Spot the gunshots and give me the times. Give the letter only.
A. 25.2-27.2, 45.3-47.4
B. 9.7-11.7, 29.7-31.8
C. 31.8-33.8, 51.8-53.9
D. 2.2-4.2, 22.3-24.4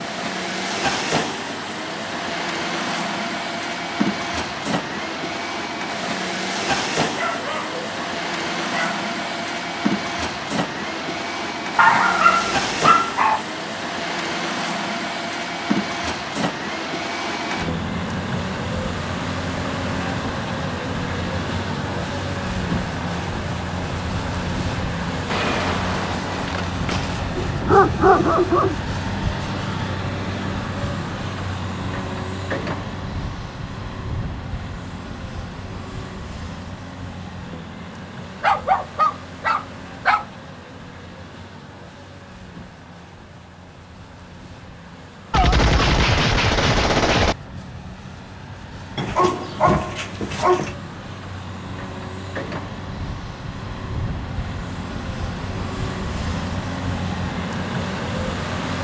A.